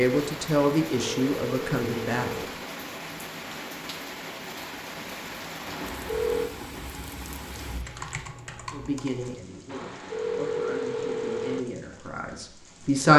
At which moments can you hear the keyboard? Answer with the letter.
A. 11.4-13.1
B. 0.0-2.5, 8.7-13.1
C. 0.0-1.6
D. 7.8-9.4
D.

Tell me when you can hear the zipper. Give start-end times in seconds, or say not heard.
not heard.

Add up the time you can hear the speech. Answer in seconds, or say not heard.
7 s.